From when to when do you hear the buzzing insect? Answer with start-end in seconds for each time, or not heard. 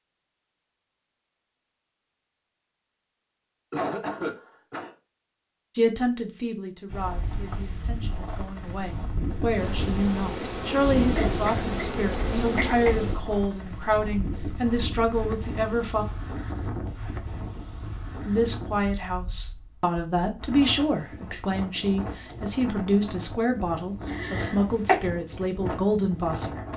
9.5-13.2.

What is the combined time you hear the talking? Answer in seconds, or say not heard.
19 s.